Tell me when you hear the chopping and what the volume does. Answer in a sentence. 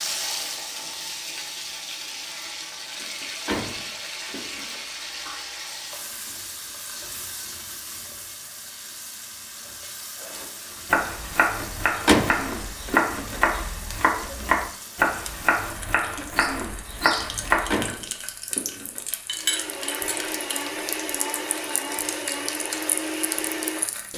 You can hear the chopping from 10.2 to 17.8 s, at a steady volume.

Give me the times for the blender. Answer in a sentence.
The blender can be heard from 19.3 to 23.9 s.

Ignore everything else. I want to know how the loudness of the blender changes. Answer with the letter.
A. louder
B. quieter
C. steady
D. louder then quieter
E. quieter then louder
C.